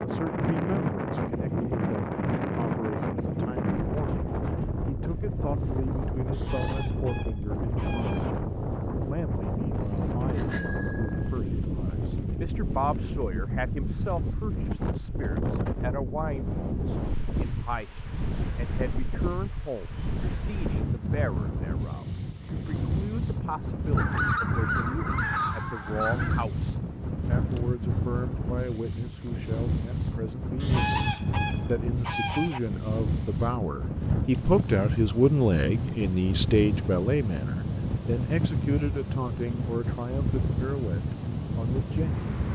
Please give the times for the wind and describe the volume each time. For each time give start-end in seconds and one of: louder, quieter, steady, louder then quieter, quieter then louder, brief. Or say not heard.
0.0-42.4 steady.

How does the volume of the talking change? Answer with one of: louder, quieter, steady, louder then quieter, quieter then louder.
louder.